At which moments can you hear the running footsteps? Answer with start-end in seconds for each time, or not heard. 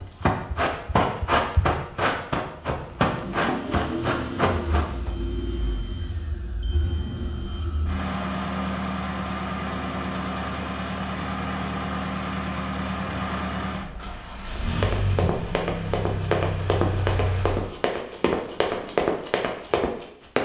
0.0-5.1, 14.6-20.3.